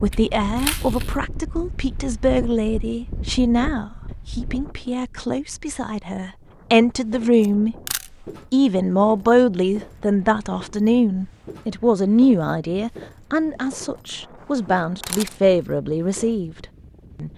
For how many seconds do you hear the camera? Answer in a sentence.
You can hear the camera for 2 seconds altogether.